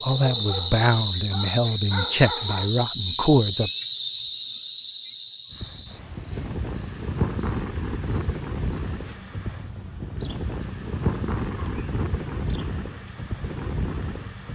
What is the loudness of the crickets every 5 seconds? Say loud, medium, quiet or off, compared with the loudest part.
loud, quiet, quiet.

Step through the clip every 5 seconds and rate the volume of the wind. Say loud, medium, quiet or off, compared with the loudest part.
off, loud, loud.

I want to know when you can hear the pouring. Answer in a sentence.
You can't hear the pouring here.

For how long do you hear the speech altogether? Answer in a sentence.
The speech can be heard for 4 seconds in total.